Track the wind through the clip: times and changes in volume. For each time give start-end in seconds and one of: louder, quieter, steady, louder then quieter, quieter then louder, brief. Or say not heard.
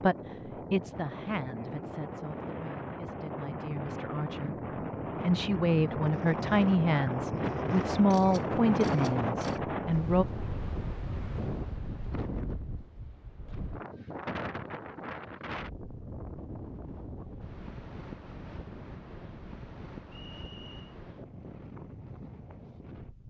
0.0-23.2 louder then quieter.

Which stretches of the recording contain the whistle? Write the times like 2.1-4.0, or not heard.
20.1-20.9.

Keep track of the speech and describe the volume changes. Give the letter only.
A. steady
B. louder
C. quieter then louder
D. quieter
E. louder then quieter
C.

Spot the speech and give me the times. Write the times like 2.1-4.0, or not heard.
0.0-4.5, 5.2-10.2.